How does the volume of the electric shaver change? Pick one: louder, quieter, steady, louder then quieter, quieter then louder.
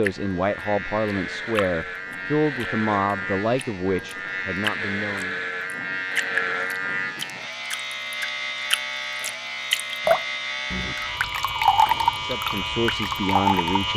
steady.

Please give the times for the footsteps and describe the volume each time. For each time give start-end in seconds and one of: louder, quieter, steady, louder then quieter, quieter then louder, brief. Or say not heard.
not heard.